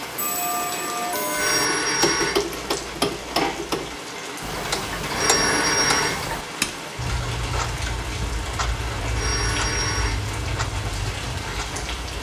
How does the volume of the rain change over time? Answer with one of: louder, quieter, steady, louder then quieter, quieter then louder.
steady.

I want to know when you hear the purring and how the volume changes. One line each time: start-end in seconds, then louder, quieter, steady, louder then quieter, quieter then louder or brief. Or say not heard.
not heard.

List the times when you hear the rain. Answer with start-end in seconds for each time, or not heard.
0.0-12.1.